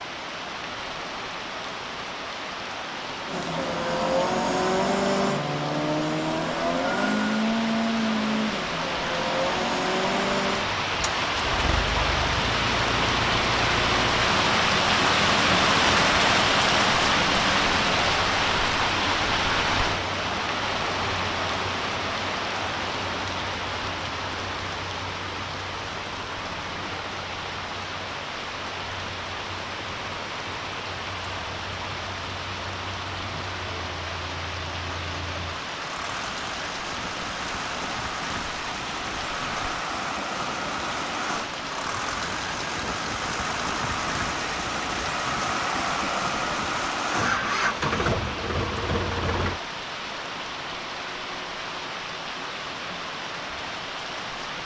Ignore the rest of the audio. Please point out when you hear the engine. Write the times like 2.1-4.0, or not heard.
3.2-49.6.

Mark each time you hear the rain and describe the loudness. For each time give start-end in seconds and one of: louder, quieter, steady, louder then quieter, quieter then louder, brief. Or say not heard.
0.0-54.6 louder then quieter.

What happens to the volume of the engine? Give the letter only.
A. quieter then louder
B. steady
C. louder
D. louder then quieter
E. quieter
A.